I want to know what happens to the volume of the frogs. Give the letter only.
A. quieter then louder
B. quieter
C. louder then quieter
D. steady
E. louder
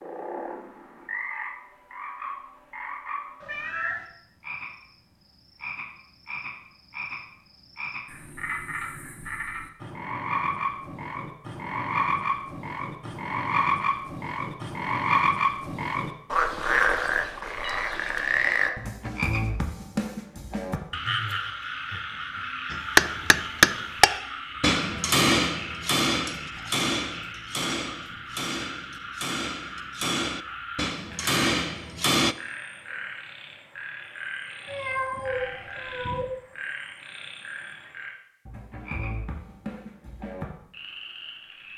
C.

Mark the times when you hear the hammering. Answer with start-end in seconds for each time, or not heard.
22.7-32.4.